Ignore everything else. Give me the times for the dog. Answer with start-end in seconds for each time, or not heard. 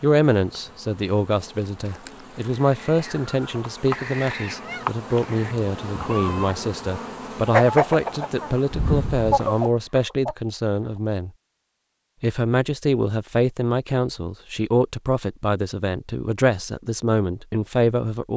not heard.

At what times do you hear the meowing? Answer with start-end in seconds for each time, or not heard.
8.7-9.3.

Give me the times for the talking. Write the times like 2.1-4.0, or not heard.
0.0-11.3, 12.2-18.3.